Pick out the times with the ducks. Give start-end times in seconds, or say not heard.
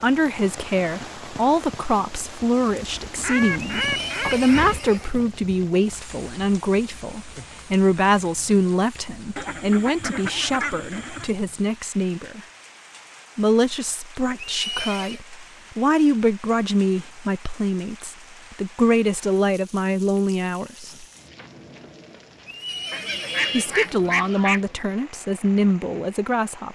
3.2-4.8, 9.3-11.3, 22.9-24.7.